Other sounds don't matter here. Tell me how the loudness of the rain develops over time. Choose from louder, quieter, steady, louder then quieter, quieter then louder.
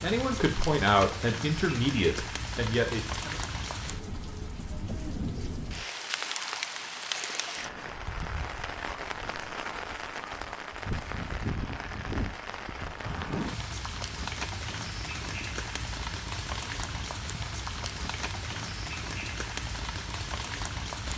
steady.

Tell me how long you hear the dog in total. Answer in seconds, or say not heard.
not heard.